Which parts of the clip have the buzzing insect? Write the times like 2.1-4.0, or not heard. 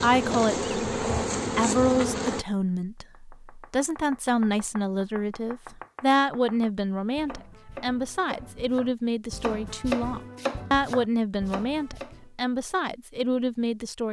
0.0-2.5.